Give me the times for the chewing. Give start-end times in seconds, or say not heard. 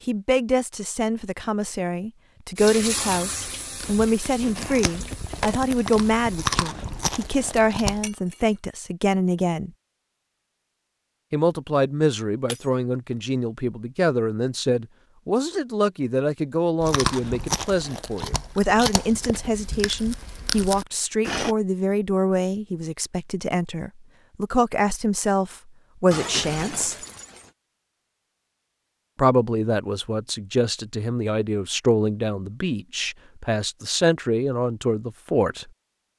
3.6-8.1, 16.8-21.6.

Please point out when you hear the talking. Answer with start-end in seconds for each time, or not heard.
0.1-9.7, 11.3-26.9, 29.1-35.7.